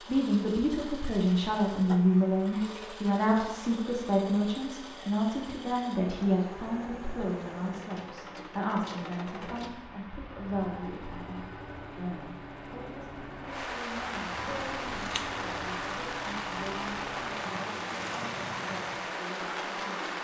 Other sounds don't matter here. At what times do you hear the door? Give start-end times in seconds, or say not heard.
not heard.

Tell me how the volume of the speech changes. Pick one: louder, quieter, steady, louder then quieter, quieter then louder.
quieter.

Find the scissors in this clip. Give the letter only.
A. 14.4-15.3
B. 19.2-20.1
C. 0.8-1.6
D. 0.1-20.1
A.